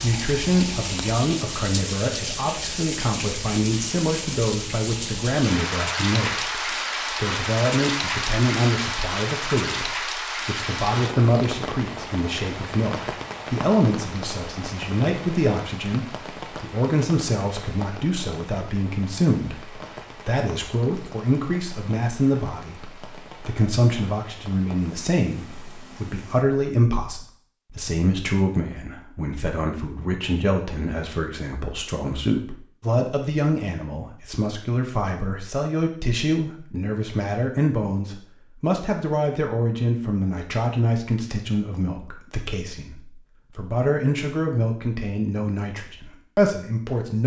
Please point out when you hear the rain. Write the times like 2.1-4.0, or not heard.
0.0-26.4.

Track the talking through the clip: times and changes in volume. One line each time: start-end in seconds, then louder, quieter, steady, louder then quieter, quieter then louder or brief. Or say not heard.
0.0-47.2 steady.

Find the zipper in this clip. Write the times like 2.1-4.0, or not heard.
not heard.